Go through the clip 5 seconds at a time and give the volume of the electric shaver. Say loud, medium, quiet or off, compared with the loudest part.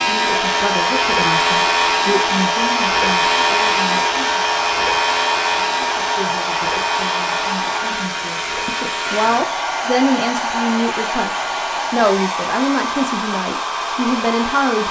loud, medium, quiet.